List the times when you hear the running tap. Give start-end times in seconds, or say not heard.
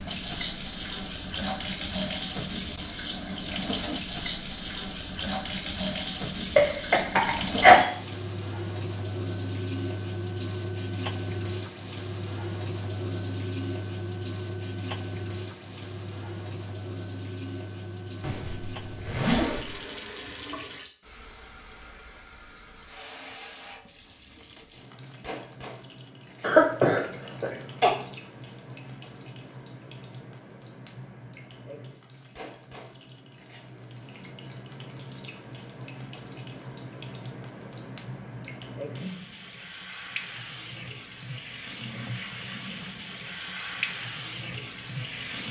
0.0-45.4.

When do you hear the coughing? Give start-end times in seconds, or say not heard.
6.5-7.9, 26.4-27.9.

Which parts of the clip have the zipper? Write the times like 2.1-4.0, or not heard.
18.2-19.8.